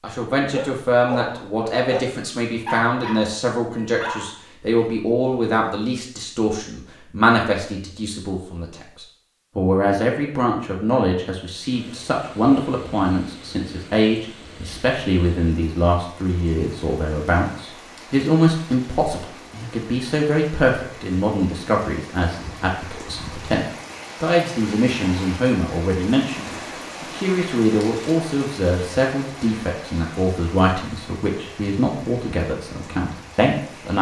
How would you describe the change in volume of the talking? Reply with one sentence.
The volume of the talking stays about the same.